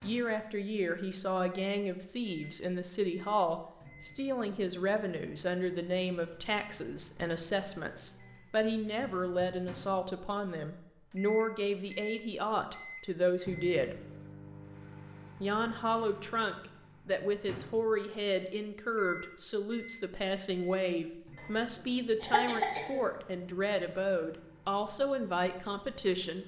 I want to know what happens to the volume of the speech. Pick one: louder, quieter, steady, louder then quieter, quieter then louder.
steady.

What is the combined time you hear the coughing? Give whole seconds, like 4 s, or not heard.
2 s.